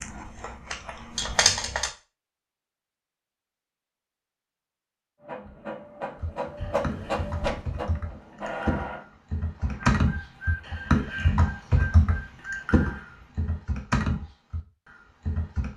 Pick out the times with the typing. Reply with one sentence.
The typing can be heard from 0.0 to 1.9 s and from 6.2 to 15.7 s.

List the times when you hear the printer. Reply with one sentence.
You can hear the printer from 5.2 to 13.3 s.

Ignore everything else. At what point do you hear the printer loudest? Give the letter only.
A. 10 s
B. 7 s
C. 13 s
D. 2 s
B.